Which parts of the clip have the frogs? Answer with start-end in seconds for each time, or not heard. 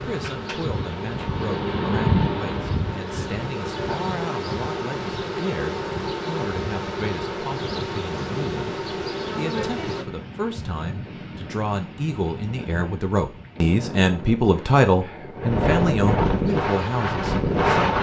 not heard.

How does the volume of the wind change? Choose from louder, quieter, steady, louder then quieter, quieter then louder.
quieter then louder.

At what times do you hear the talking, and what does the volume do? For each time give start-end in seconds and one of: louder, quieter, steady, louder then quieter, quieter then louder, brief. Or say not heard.
0.0-17.9 louder.